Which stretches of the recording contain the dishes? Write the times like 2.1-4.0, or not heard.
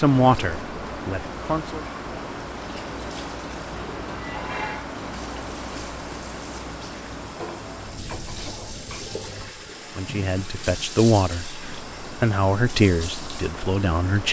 4.0-5.0, 7.2-9.6.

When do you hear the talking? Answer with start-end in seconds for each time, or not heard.
0.0-1.8, 9.9-14.2.